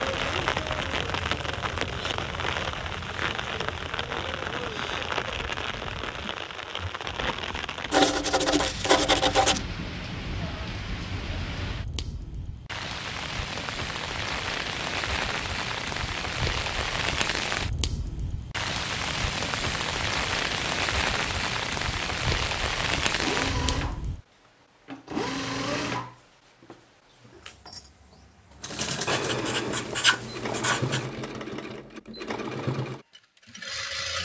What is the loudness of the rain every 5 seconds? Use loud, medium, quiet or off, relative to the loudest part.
loud, medium, medium, loud, loud, off, off.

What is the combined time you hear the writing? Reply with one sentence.
The writing can be heard for 4 seconds in total.